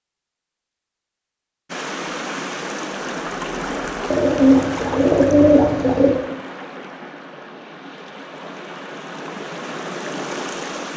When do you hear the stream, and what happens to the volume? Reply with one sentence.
You can hear the stream from 1.6 to 10.9 s, getting quieter then louder.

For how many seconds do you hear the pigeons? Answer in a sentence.
The pigeons can be heard for 2 seconds in total.